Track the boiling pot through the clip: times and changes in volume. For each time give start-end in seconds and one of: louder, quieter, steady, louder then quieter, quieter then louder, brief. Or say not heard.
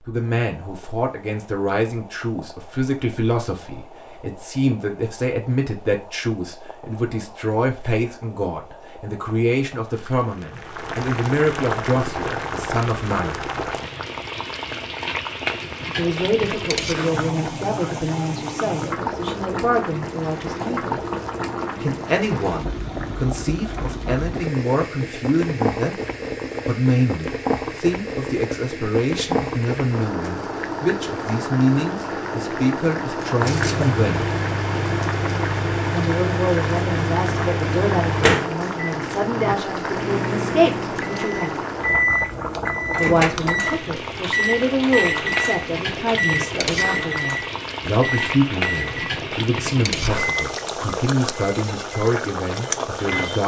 0.1-53.4 louder.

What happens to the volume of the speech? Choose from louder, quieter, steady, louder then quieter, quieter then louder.
steady.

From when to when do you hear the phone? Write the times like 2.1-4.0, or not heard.
not heard.